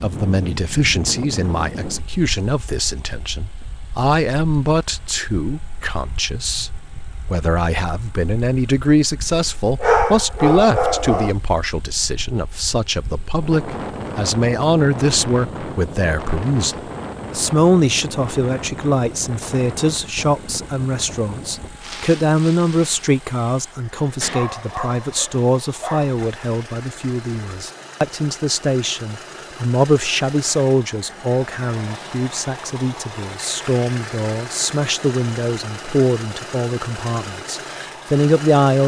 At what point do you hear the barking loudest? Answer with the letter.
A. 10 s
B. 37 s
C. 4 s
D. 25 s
A.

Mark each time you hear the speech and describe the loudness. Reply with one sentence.
You can hear the speech from 0.0 to 38.8 s, at a steady volume.